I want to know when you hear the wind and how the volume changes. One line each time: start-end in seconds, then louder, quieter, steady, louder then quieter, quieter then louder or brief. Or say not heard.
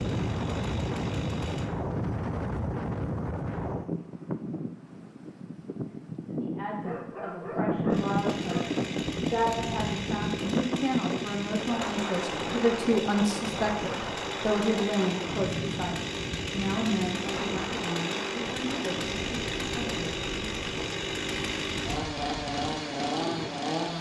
0.0-23.9 quieter.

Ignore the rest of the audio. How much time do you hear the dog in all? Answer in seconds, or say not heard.
2 s.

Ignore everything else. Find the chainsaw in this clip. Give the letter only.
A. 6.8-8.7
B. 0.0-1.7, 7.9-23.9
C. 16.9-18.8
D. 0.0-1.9
B.